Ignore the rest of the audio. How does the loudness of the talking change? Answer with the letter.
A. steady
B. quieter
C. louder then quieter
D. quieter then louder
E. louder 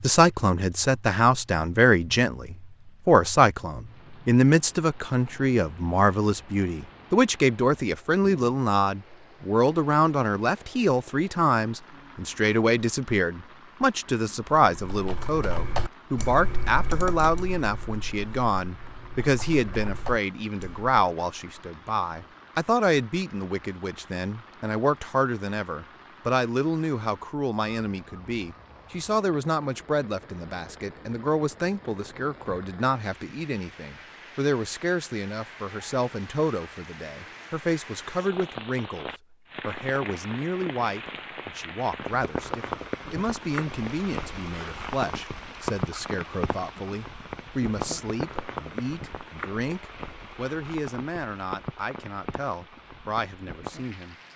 B.